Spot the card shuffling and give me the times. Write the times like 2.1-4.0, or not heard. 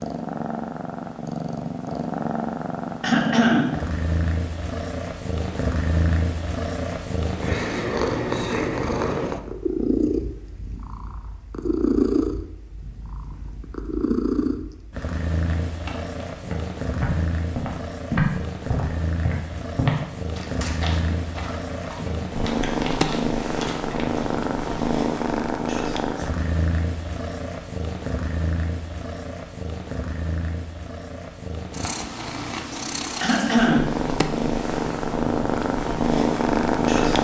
not heard.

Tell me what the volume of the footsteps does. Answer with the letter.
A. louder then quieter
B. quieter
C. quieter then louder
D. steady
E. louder
A.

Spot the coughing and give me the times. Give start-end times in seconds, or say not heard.
3.0-3.8, 33.2-33.9.